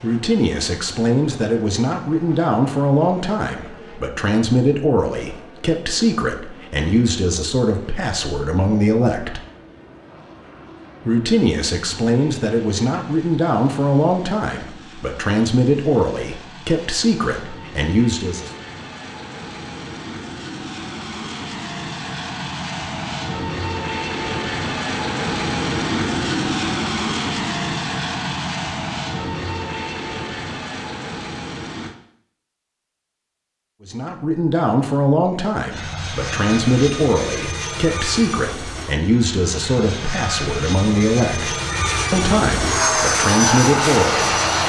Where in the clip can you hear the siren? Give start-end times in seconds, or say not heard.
not heard.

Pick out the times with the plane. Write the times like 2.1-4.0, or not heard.
0.0-31.9, 35.7-44.6.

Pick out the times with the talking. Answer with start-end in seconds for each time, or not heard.
0.0-9.4, 11.1-18.5, 33.9-44.6.